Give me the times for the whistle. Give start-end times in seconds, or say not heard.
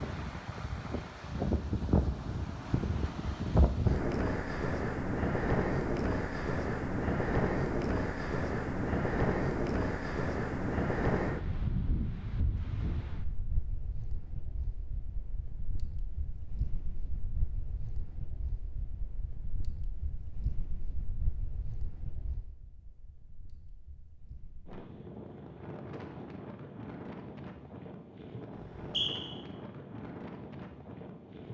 28.6-29.3.